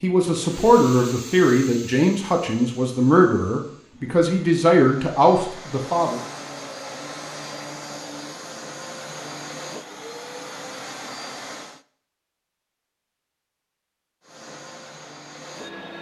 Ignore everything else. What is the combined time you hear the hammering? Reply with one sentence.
The hammering can't be heard in this clip.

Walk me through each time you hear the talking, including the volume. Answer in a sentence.
The talking can be heard from 0.0 to 6.2 s, at a steady volume.